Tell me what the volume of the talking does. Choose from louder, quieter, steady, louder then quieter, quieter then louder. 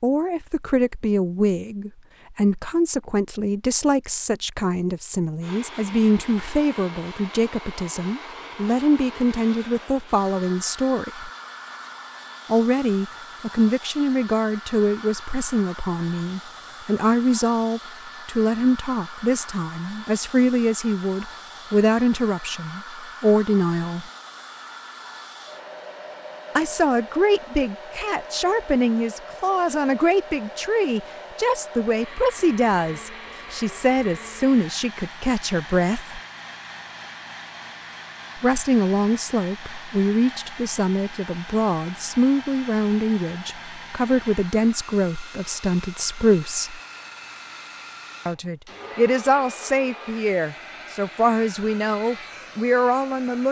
steady.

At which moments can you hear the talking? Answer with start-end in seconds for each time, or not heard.
0.0-11.3, 12.4-24.1, 26.6-36.2, 38.4-46.8, 48.2-53.4.